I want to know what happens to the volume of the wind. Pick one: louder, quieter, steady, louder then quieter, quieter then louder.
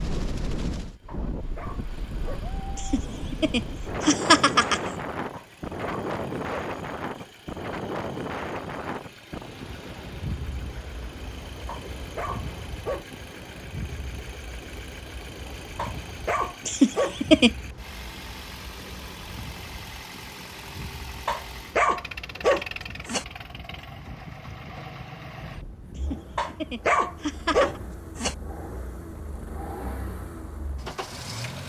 quieter.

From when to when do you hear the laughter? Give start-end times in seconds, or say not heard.
2.8-5.0, 16.6-17.5, 25.9-27.8.